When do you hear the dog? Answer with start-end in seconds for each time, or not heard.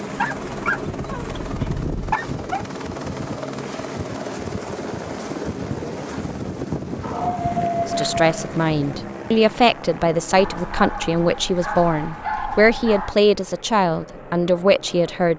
0.1-2.6, 7.0-8.6, 10.3-13.2.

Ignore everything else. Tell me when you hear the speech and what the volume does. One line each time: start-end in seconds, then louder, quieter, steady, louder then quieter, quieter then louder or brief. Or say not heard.
7.8-15.3 steady.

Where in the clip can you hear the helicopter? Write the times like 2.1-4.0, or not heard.
0.0-15.3.